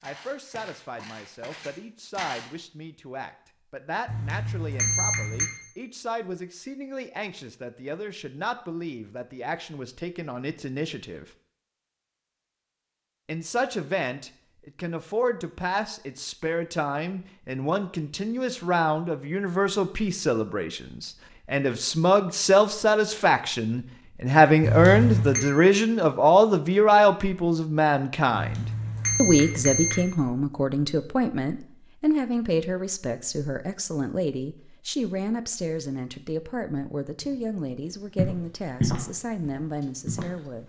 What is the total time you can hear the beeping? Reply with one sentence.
The beeping can be heard for 4 seconds in total.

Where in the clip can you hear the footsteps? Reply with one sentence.
You can hear the footsteps from 0.0 to 2.5 s and from 37.2 to 40.6 s.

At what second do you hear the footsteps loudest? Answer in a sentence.
The loudest moment of the footsteps is at 39 seconds.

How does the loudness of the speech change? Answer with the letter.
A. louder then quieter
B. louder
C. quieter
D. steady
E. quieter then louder
A.